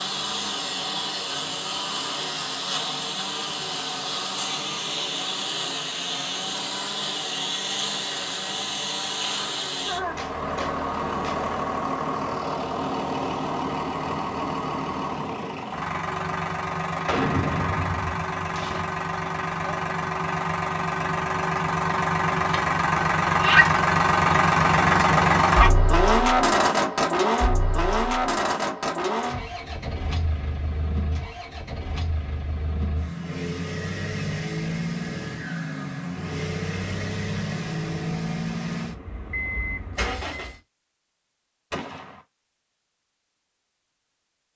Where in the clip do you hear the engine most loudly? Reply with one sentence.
The loudest moment of the engine is at 25 seconds.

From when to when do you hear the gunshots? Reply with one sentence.
The gunshots can be heard from 10.2 to 11.4 s, from 17.1 to 18.9 s and from 41.7 to 42.2 s.